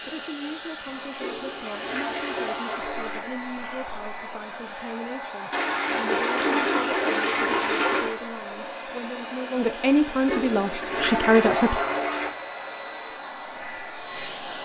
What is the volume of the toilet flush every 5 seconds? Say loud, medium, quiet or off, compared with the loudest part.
medium, loud, loud.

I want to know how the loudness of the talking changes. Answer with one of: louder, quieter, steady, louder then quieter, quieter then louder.
louder.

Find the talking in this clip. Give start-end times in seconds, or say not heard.
0.1-11.8.